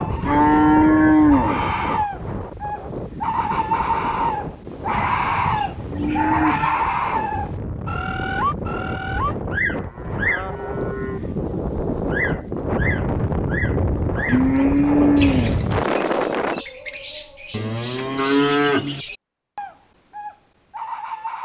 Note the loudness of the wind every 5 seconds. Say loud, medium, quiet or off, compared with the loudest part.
medium, medium, loud, loud, off.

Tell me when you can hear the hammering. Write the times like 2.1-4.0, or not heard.
not heard.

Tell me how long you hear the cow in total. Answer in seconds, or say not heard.
8 s.